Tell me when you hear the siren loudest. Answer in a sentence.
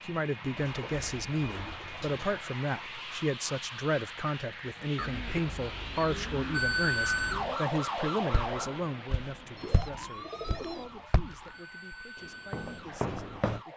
The volume of the siren peaks at 7 seconds.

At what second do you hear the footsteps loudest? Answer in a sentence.
The volume of the footsteps peaks at 13 seconds.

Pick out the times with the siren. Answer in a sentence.
You can hear the siren from 6.5 to 13.7 s.